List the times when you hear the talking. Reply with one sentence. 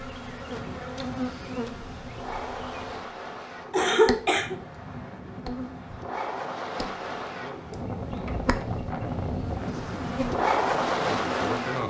You can't hear the talking here.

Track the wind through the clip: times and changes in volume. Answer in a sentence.
The wind can be heard from 0.0 to 11.8 s, getting louder.